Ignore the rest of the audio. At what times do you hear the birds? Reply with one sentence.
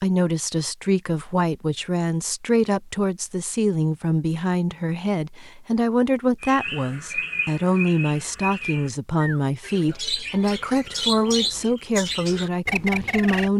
You can hear the birds from 6.4 to 13.5 s.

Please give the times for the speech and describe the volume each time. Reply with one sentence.
The speech can be heard from 0.0 to 13.5 s, at a steady volume.